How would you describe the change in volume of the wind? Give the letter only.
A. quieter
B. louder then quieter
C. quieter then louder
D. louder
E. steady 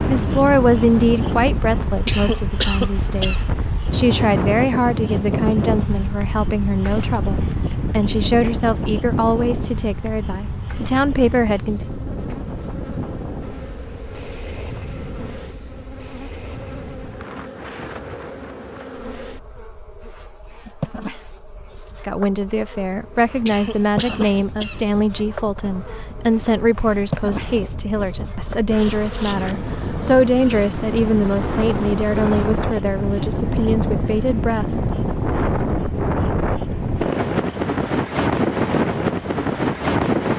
C.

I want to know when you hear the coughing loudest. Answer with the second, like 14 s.
3 s.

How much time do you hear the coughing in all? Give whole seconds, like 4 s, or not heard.
3 s.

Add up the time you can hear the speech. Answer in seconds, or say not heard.
25 s.